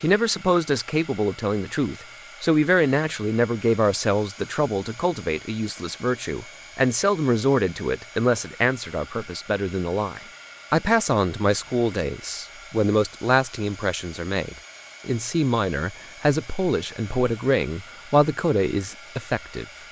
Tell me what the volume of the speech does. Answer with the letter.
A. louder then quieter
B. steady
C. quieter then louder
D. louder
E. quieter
B.